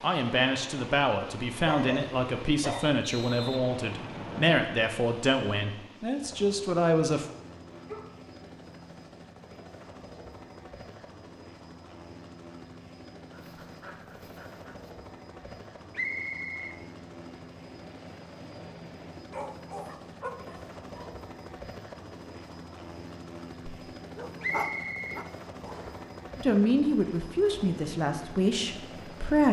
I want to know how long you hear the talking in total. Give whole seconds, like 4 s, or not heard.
10 s.